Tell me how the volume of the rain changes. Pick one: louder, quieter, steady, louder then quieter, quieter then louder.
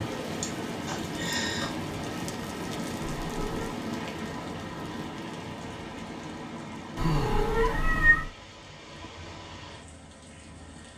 quieter.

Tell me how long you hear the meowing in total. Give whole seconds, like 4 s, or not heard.
2 s.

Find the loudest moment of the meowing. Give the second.
8 s.